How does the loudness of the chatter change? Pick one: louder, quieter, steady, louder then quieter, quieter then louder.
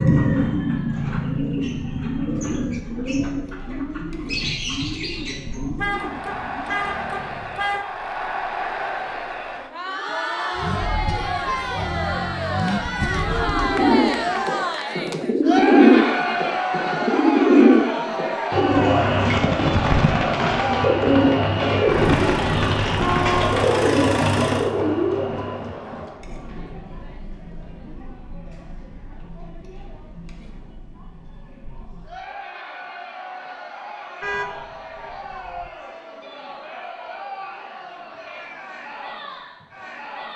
louder then quieter.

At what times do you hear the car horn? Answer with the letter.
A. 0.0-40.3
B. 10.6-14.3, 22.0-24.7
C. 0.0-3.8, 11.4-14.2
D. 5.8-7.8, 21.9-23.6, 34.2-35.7
D.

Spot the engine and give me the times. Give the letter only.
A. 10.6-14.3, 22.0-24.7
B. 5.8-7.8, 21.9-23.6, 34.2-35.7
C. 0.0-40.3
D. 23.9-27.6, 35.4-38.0
A.